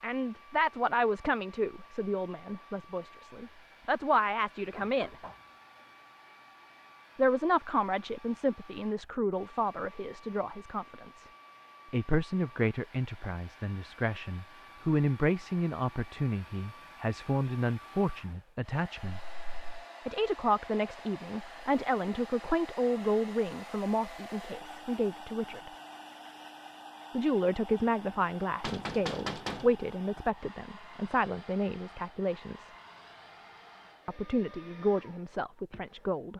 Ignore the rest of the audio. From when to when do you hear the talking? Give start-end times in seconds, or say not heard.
0.0-5.2, 7.2-11.2, 11.9-19.2, 20.1-25.7, 27.1-32.7, 34.0-36.3.